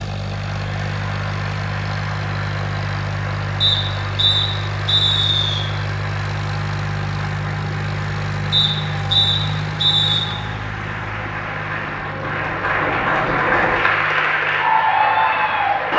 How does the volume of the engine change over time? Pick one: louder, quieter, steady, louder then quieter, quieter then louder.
quieter.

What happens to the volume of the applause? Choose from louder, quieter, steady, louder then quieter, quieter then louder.
louder.